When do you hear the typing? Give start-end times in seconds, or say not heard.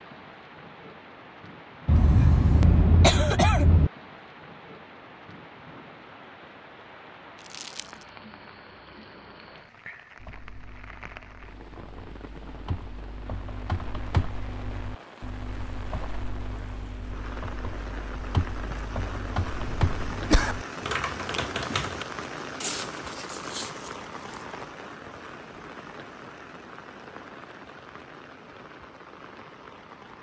10.2-22.1.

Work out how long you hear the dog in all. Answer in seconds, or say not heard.
not heard.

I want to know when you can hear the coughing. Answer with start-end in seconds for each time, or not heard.
1.9-3.9, 19.6-20.6.